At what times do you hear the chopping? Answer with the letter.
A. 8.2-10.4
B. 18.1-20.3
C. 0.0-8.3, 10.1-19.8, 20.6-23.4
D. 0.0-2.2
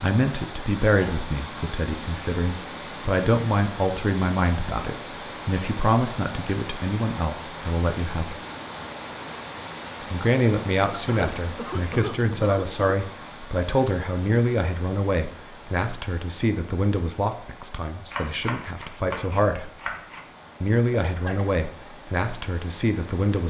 B.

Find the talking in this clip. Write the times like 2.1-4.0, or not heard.
0.0-8.3, 10.1-19.8, 20.6-23.4.